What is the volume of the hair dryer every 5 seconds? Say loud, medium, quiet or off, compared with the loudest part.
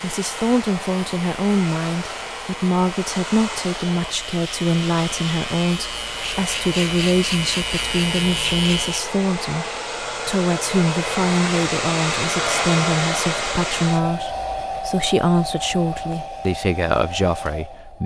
medium, medium, loud, medium.